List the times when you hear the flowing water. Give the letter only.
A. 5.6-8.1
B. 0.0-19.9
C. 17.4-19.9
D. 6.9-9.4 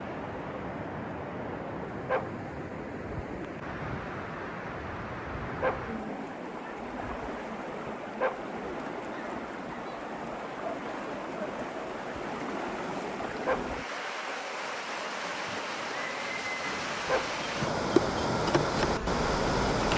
B.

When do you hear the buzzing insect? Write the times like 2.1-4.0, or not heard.
17.4-19.9.